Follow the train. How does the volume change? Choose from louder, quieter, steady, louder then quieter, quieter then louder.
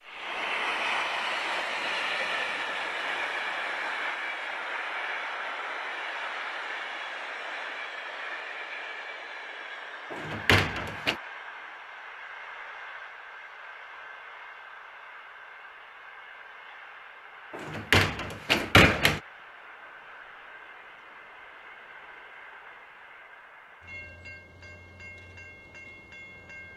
quieter.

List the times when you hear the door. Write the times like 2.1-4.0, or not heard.
10.1-11.2, 17.5-19.2.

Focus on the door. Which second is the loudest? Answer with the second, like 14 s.
19 s.